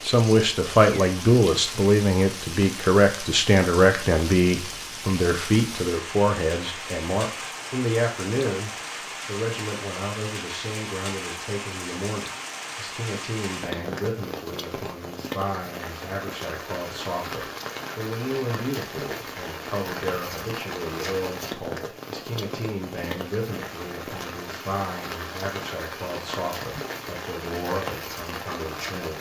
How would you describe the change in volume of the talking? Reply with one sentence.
The loudness of the talking goes down.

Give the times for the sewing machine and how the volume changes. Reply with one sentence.
The sewing machine can't be heard in this clip.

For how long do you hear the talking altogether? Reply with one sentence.
You can hear the talking for 29 seconds altogether.